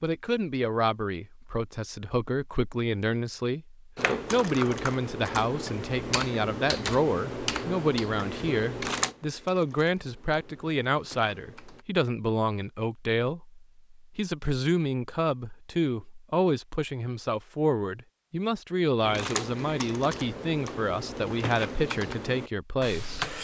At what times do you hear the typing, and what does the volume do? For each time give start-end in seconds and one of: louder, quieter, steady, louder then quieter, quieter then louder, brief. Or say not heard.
4.0-11.8 quieter
19.0-23.3 steady.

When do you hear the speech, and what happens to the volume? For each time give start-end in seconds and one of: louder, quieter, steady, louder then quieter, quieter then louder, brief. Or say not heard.
0.0-23.3 steady.